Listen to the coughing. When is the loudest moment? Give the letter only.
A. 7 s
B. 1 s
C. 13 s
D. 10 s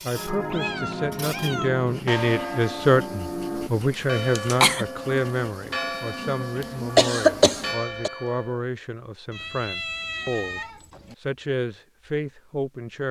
A.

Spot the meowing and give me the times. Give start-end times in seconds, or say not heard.
0.5-1.9, 9.3-11.2.